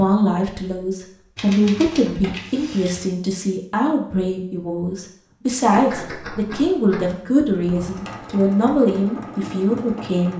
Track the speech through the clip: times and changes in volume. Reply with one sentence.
You can hear the speech from 0.0 to 10.3 s, at a steady volume.